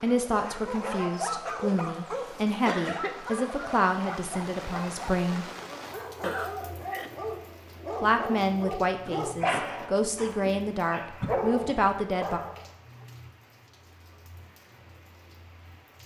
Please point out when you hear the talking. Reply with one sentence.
The talking can be heard from 0.0 to 5.5 s and from 8.0 to 12.4 s.